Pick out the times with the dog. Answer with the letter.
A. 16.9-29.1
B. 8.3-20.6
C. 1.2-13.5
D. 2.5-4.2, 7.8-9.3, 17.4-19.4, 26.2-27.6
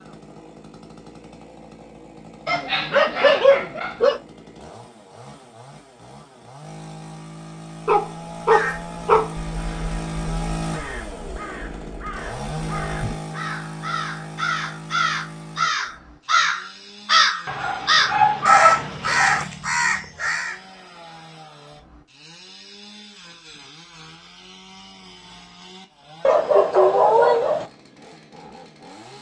D.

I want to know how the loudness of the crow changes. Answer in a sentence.
The loudness of the crow goes up.